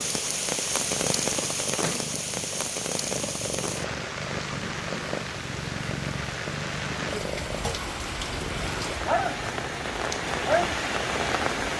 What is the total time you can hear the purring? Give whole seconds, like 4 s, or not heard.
12 s.